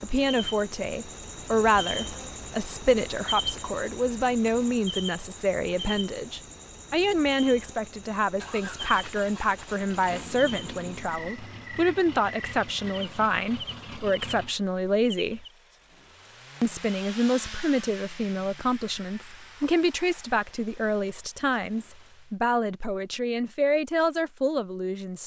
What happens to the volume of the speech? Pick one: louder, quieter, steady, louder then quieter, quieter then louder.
steady.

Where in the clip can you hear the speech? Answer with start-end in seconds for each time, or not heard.
0.0-15.4, 16.6-25.2.